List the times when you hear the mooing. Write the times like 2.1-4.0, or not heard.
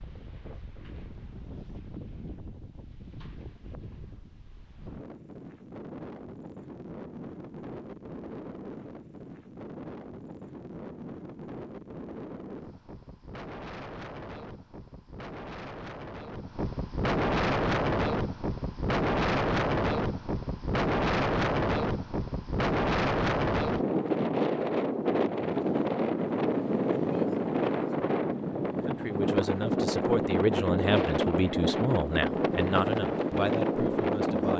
not heard.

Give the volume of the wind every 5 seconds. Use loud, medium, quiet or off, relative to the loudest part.
quiet, quiet, quiet, loud, loud, loud, loud.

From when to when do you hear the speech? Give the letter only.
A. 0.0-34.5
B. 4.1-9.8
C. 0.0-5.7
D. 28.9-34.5
D.